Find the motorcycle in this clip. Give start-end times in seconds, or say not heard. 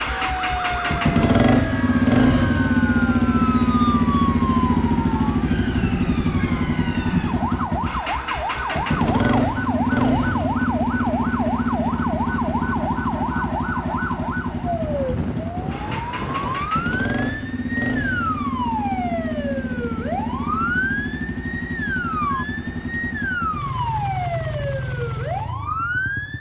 0.0-26.3.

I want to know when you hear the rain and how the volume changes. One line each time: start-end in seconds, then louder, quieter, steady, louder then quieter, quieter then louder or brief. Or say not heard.
not heard.